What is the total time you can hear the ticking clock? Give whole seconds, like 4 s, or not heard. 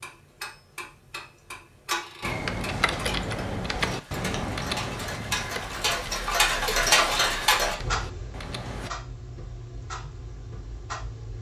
11 s.